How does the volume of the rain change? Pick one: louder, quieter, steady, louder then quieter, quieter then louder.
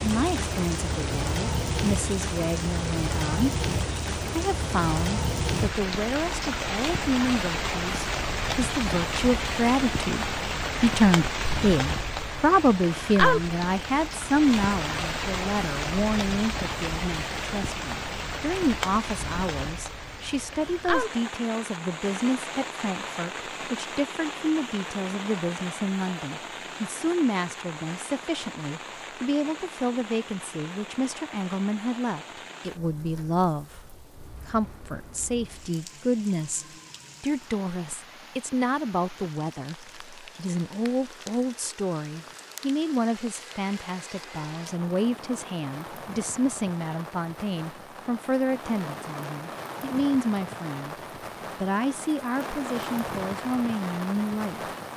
quieter then louder.